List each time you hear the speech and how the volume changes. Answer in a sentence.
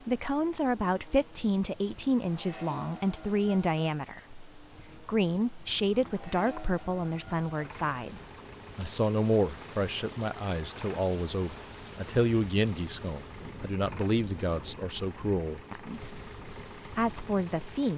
The speech can be heard from 0.1 to 16.2 s, at a steady volume; and briefly from 16.9 to 17.9 s.